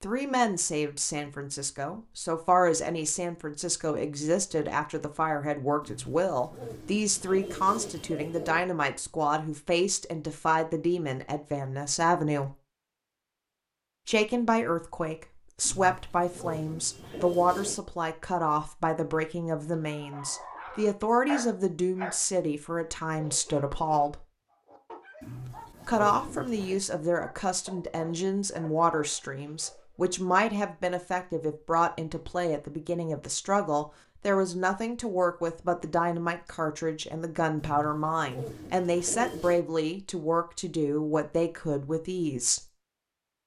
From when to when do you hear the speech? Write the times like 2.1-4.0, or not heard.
0.0-12.5, 14.1-24.2, 25.9-42.6.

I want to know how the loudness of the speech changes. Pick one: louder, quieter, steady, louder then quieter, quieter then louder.
steady.